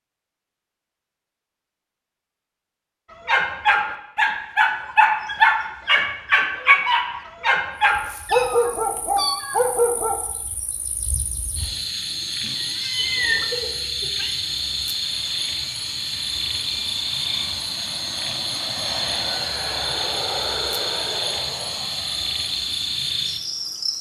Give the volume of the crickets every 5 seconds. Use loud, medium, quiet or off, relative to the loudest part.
off, quiet, loud, loud, loud.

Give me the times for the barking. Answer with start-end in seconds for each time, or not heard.
3.2-10.2.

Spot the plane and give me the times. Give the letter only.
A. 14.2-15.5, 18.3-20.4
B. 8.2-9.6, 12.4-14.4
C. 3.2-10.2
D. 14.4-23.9
D.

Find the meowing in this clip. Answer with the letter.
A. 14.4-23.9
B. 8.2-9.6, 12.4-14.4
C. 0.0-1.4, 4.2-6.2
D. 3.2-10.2
B.